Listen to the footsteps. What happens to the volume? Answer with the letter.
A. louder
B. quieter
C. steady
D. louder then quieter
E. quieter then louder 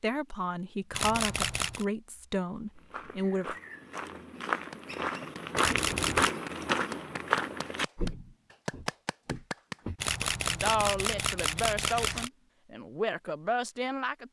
D.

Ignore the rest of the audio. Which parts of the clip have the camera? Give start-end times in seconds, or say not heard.
0.9-1.9, 5.5-6.3, 9.9-12.3.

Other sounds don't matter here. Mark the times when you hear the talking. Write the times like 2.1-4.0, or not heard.
0.0-3.5, 10.4-14.2.